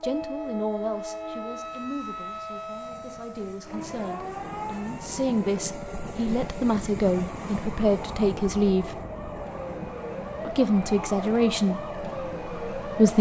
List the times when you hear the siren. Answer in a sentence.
You can hear the siren from 0.0 to 13.1 s.